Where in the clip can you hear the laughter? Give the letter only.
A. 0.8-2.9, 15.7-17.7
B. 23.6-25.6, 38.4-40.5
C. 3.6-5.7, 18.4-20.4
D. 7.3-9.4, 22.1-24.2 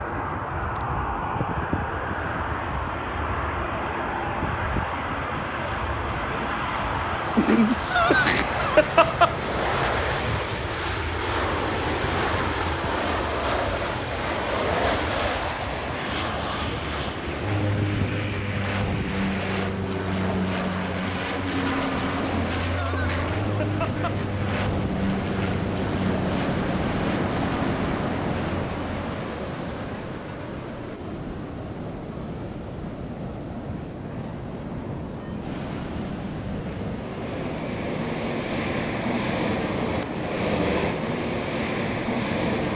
D.